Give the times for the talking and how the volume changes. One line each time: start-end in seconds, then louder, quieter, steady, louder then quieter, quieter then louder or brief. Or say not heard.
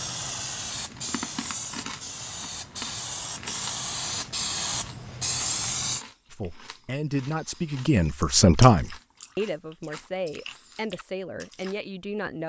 6.3-12.4 louder then quieter.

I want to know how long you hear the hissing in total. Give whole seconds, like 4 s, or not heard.
6 s.